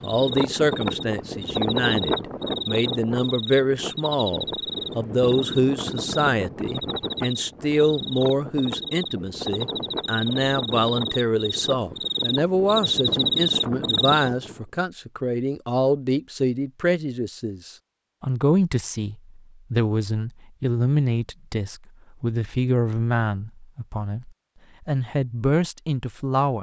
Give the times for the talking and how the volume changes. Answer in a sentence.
The talking can be heard from 0.0 to 26.5 s, at a steady volume.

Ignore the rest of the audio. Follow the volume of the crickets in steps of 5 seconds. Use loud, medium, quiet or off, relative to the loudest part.
medium, medium, loud, off, off, off.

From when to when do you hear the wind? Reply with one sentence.
You can hear the wind from 0.0 to 14.7 s.